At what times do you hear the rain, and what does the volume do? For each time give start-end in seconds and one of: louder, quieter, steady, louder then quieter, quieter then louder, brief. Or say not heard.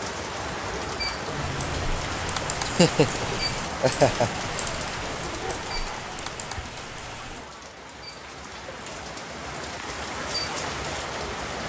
0.0-11.6 quieter then louder.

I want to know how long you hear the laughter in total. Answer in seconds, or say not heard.
2 s.